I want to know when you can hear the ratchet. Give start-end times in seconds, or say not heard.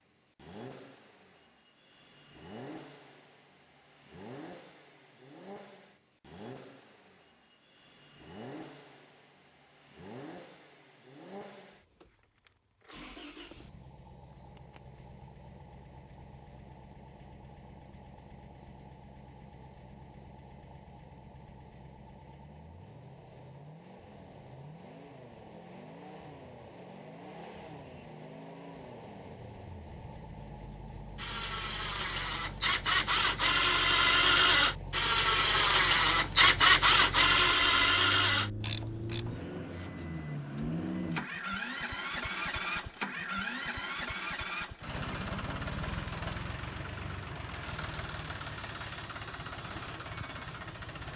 31.1-39.4.